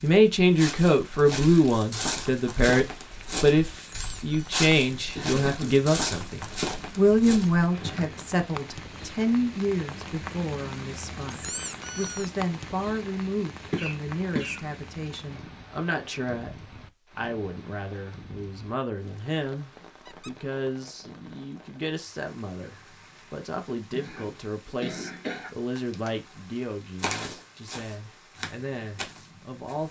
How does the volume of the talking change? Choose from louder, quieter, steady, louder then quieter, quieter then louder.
quieter.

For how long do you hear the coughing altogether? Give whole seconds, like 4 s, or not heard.
3 s.